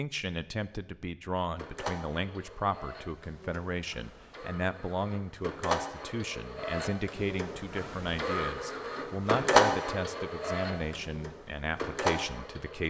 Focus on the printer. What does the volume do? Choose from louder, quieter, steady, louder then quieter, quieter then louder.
louder then quieter.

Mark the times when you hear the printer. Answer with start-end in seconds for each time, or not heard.
1.6-12.8.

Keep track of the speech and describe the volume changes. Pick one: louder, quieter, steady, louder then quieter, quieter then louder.
steady.